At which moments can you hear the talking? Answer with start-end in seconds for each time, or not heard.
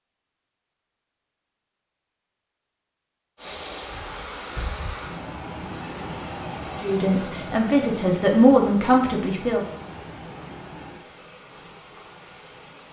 6.8-9.6.